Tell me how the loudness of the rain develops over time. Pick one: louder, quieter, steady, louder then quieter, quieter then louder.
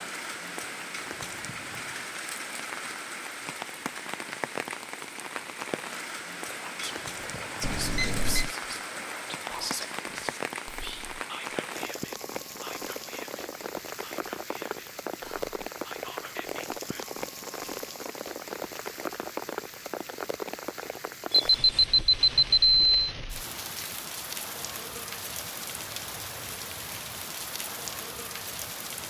steady.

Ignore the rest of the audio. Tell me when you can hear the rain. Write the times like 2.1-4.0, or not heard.
0.0-29.0.